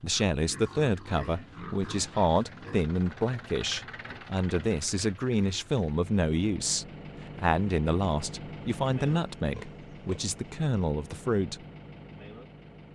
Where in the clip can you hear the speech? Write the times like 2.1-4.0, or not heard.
0.0-11.6.